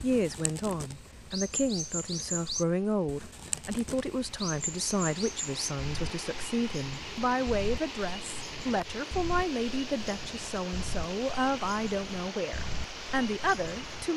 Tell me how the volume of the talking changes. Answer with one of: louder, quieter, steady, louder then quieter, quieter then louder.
steady.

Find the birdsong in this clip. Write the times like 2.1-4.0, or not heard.
0.0-14.1.